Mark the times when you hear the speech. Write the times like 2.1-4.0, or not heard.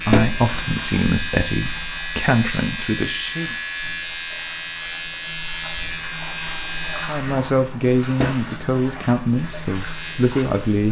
0.0-3.5, 7.0-10.8.